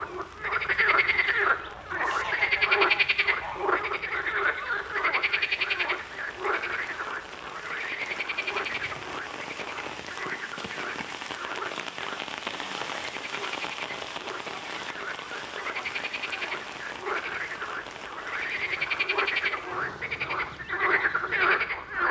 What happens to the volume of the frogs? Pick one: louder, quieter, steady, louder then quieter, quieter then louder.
quieter then louder.